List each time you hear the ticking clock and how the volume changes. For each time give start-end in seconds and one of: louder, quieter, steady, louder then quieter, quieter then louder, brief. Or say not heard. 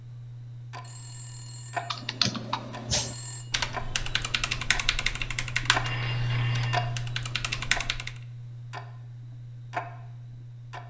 0.0-10.8 louder then quieter.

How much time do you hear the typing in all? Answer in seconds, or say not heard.
6 s.